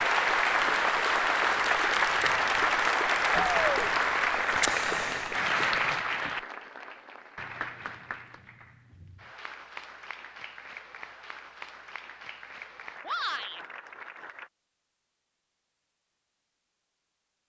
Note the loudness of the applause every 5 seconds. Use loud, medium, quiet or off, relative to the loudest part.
loud, medium, quiet, off.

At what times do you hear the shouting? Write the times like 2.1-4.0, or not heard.
3.3-3.9, 13.1-13.6.